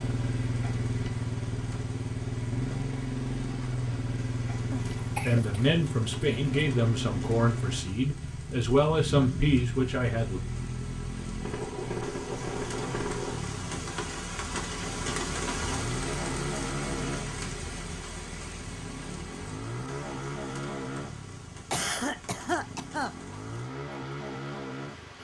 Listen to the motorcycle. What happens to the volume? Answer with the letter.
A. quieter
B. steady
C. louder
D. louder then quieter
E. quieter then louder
A.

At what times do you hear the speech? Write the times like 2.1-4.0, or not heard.
5.2-10.4.